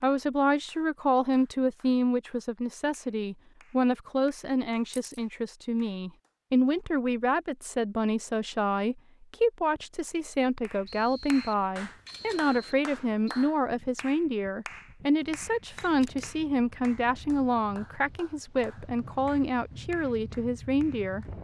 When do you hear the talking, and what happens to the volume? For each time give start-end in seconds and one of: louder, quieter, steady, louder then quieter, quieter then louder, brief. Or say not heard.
0.0-21.2 steady.